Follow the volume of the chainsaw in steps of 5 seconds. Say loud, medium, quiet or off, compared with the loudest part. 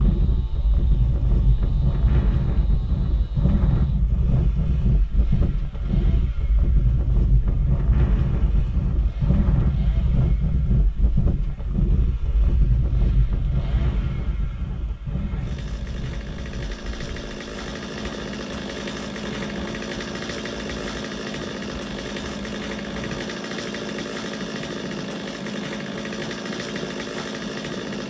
quiet, quiet, quiet, loud, loud, loud.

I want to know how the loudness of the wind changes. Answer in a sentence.
The volume of the wind goes down.